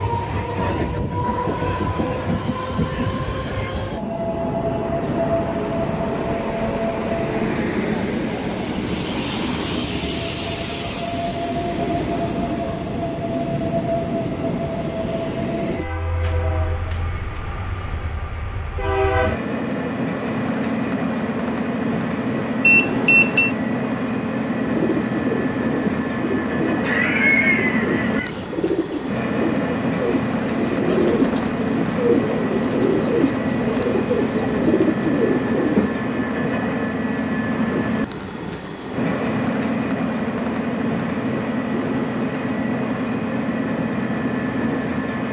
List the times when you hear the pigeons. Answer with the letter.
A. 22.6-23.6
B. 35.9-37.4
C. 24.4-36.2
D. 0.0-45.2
C.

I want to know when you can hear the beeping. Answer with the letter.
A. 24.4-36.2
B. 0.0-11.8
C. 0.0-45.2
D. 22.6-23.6
D.